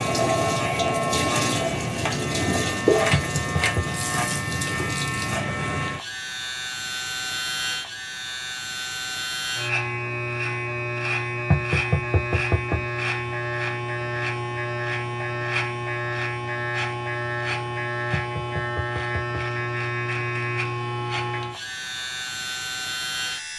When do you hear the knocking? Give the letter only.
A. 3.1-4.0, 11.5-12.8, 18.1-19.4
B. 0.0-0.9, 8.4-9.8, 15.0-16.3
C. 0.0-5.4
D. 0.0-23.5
A.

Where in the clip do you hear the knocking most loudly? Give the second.
12 s.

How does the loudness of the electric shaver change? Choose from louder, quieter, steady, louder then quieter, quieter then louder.
steady.